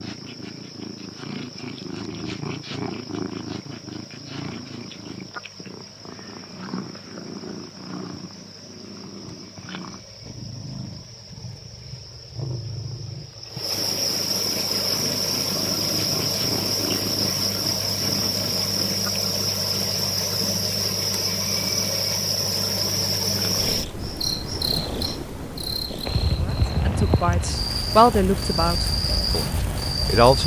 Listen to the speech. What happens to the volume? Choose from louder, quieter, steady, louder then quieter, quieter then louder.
louder then quieter.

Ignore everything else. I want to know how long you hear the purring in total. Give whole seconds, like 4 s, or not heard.
30 s.